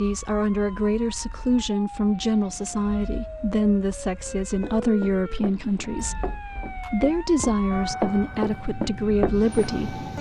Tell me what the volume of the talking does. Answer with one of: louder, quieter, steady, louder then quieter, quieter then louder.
steady.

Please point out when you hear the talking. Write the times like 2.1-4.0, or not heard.
0.0-10.0.